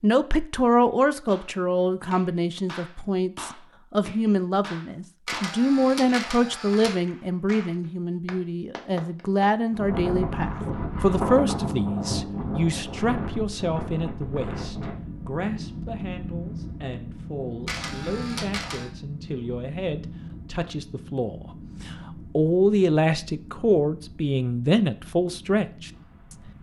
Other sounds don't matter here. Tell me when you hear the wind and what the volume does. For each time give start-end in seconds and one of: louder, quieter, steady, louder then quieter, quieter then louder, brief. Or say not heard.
9.7-26.5 quieter.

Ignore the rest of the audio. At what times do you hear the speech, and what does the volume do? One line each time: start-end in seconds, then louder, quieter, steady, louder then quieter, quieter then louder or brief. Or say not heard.
0.0-25.9 quieter then louder.